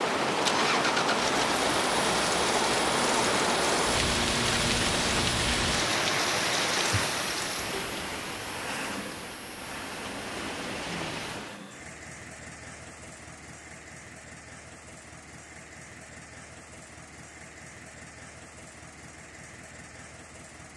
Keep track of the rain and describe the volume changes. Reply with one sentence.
The volume of the rain goes down.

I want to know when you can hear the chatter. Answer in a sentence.
You can't hear the chatter here.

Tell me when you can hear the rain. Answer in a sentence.
You can hear the rain from 0.0 to 11.6 s.